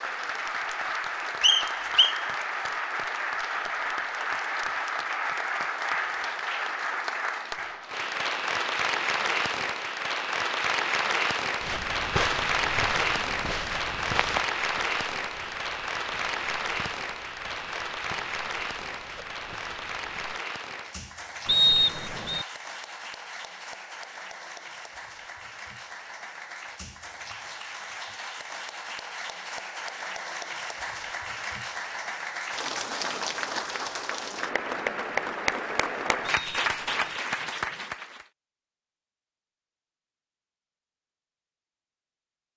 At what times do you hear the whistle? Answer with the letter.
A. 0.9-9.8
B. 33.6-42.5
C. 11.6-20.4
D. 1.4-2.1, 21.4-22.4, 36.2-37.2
D.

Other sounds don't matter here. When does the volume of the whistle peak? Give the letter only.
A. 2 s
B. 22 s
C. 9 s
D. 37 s
B.